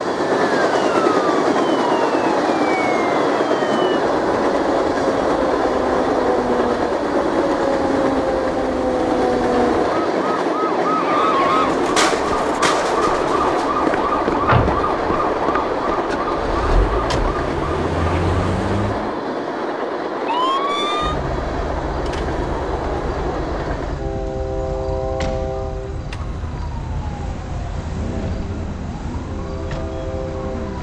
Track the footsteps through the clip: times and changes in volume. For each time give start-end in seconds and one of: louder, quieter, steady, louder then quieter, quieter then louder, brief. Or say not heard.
not heard.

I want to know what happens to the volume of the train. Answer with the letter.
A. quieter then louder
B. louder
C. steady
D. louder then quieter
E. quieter
E.